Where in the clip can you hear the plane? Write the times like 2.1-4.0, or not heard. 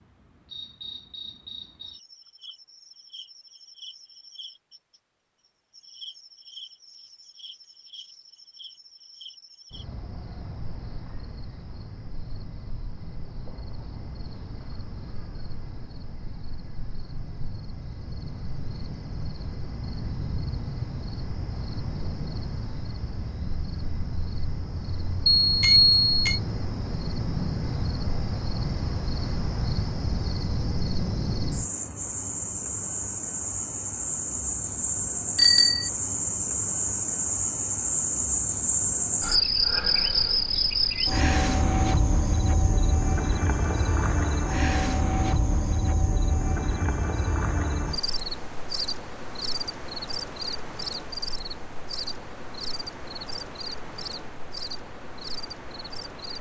not heard.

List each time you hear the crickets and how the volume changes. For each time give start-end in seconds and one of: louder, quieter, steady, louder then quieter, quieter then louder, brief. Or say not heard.
0.0-56.3 louder then quieter.